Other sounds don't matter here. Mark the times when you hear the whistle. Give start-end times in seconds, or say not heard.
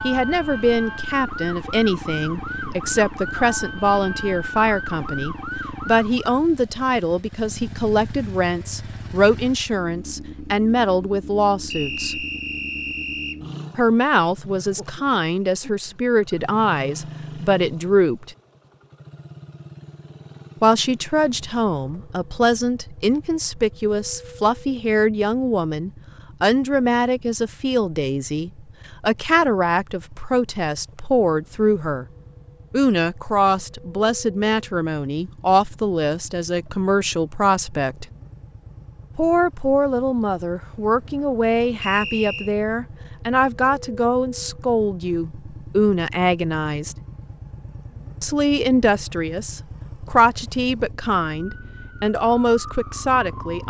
11.7-13.4, 41.8-42.5.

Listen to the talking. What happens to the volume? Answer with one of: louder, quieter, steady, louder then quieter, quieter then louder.
steady.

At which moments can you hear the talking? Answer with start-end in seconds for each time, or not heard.
0.0-12.2, 13.8-18.4, 20.6-32.0, 32.7-38.0, 39.1-47.0, 48.2-53.6.